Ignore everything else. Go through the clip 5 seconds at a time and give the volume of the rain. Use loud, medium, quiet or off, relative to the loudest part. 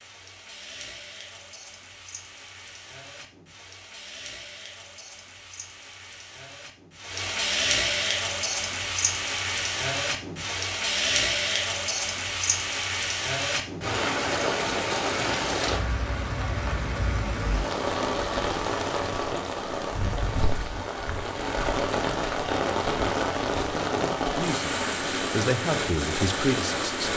quiet, loud, loud, loud, loud, loud.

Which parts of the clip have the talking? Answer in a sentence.
The talking can be heard from 24.4 to 27.1 s.